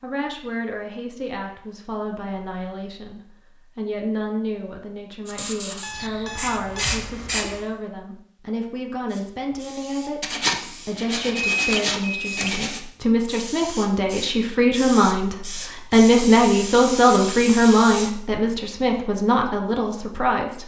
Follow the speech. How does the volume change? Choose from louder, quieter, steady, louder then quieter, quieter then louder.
louder.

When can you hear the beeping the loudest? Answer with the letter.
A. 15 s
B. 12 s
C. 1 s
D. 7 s
B.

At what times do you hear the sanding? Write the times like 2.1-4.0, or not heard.
10.2-12.8.